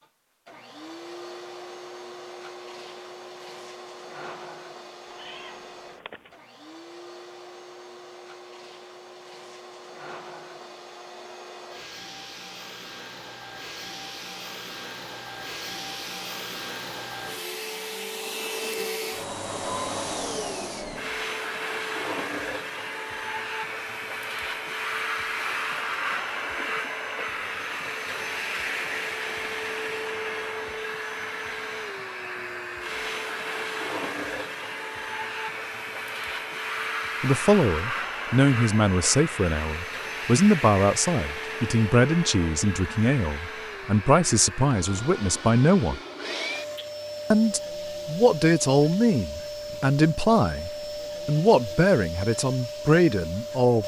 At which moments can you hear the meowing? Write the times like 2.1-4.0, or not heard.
5.0-6.4.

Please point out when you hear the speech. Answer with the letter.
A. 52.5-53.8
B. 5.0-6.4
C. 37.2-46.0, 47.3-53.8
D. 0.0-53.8
C.